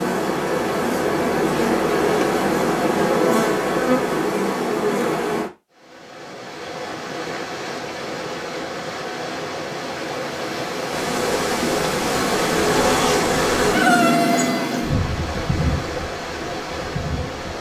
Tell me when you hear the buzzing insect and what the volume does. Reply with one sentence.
The buzzing insect can be heard from 0.0 to 5.5 s, at a steady volume; and from 10.9 to 17.5 s, getting louder then quieter.